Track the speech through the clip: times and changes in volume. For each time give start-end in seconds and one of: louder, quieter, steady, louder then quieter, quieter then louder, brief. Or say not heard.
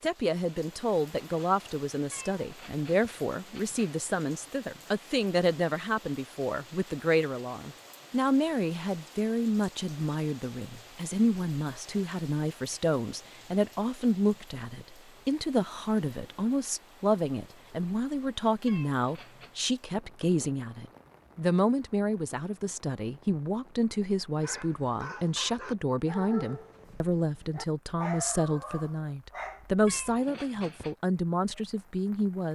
0.0-32.5 steady.